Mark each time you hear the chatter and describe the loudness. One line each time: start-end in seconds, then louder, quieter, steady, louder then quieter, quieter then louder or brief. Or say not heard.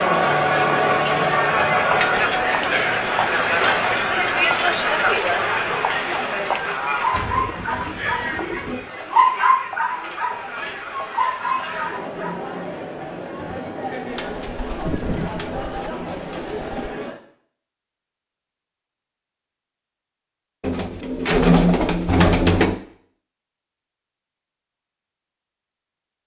0.0-17.2 quieter.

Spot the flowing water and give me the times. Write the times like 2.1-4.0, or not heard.
not heard.